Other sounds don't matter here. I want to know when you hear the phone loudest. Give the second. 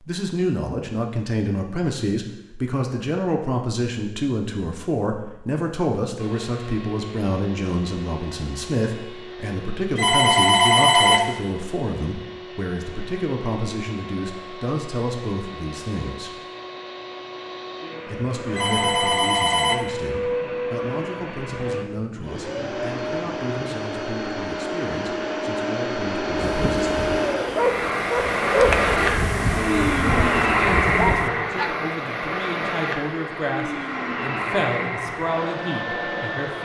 11 s.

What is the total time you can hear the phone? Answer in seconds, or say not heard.
3 s.